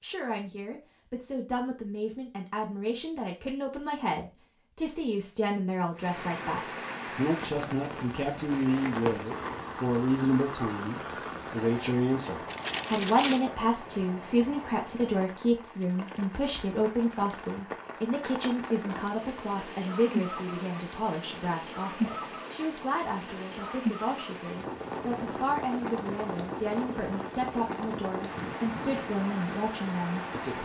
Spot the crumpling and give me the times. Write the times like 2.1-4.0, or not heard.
12.4-13.4, 15.8-17.6.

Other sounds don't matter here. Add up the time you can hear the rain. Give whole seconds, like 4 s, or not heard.
25 s.